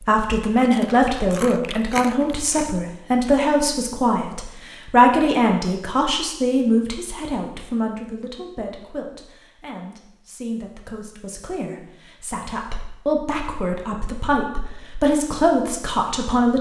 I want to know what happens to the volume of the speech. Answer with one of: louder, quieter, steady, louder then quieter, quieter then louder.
quieter then louder.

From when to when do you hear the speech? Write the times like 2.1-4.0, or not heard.
0.0-16.5.